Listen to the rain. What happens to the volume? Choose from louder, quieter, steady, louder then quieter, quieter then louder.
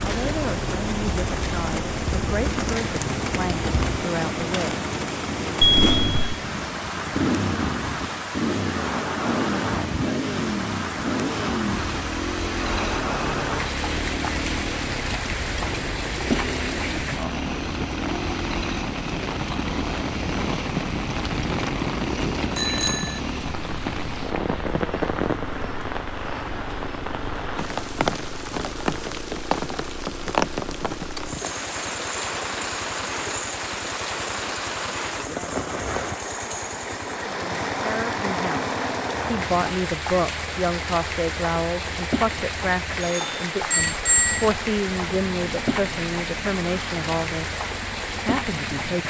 steady.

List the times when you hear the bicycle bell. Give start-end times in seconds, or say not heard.
5.6-6.5, 22.6-23.2, 43.0-44.5.